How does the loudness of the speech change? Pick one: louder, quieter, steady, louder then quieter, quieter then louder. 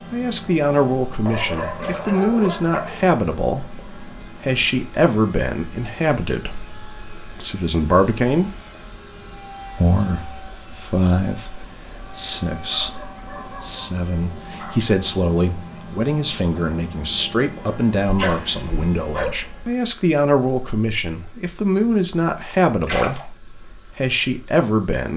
steady.